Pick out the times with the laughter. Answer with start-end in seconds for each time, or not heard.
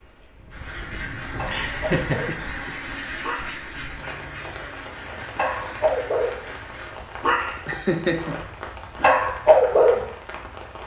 1.4-3.4, 7.5-8.4.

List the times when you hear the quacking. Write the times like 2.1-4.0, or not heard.
0.5-7.0.